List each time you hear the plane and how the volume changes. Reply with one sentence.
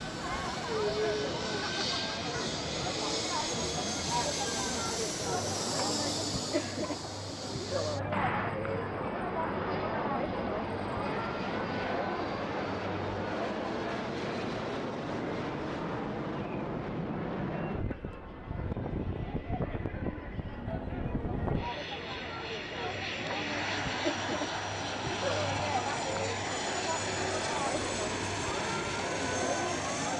The plane can be heard from 0.0 to 30.1 s, at a steady volume.